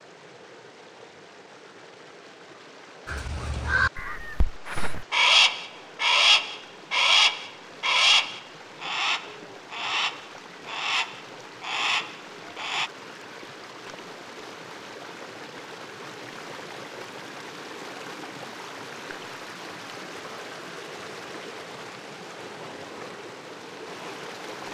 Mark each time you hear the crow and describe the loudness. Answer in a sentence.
The crow can be heard from 3.0 to 12.9 s, getting louder then quieter.